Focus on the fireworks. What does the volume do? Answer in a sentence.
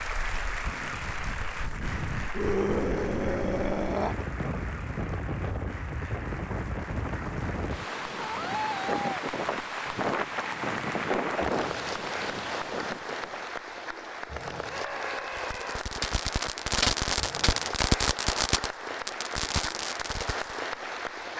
The loudness of the fireworks goes up, then down.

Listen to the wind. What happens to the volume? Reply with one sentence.
The volume of the wind goes up.